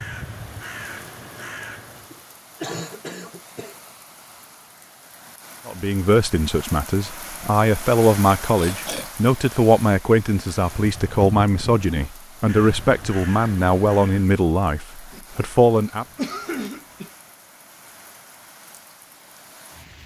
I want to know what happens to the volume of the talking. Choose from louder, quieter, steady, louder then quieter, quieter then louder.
steady.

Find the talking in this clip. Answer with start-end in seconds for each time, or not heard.
5.7-16.1.